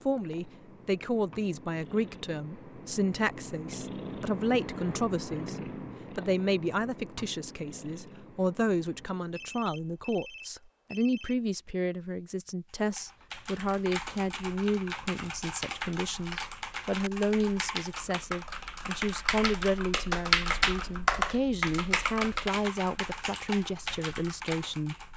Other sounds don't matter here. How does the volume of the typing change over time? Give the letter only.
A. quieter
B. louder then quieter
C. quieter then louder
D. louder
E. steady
B.